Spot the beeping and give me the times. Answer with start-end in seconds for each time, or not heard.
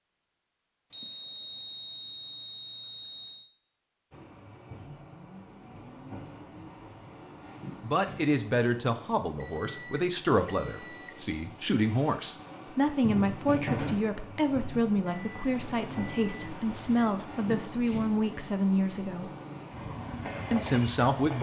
0.9-3.5, 9.4-11.2, 15.1-17.1.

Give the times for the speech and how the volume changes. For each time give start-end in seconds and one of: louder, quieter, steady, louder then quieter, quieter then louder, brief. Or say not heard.
7.8-19.3 steady
20.5-21.3 brief.